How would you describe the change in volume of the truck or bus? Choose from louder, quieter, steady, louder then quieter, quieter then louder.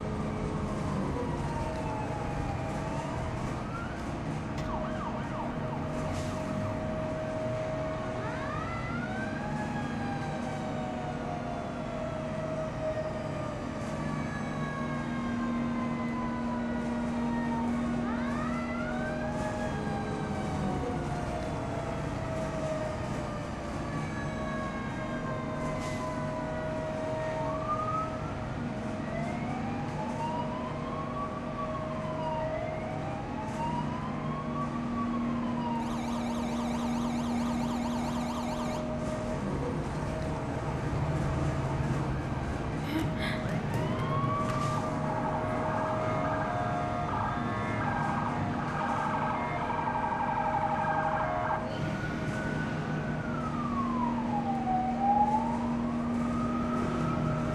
steady.